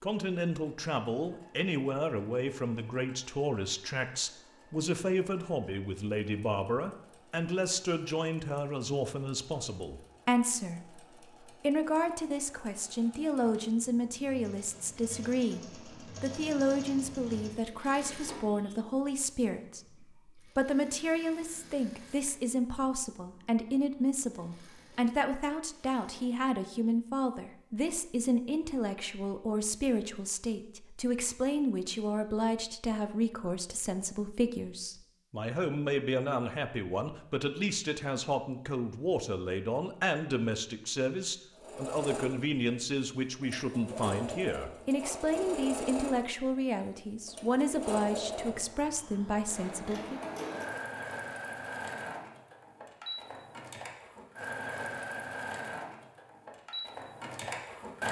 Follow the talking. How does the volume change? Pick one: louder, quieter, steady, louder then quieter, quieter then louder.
steady.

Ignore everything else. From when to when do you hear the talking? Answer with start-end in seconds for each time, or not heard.
0.0-50.2.